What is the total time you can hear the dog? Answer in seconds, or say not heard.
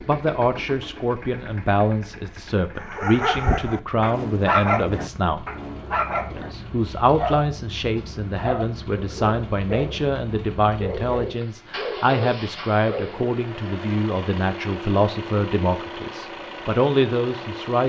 10 s.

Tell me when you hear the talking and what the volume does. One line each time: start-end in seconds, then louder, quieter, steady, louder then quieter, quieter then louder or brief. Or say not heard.
0.1-5.5 steady
6.3-17.8 steady.